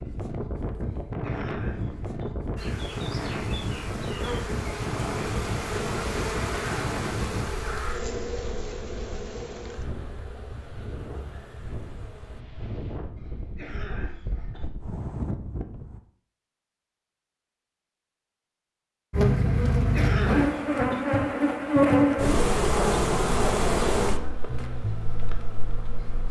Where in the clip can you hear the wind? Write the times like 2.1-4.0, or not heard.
0.0-16.0.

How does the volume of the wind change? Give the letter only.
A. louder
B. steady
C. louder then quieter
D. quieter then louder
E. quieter
D.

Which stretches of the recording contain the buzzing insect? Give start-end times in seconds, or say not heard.
2.5-12.4, 19.1-26.2.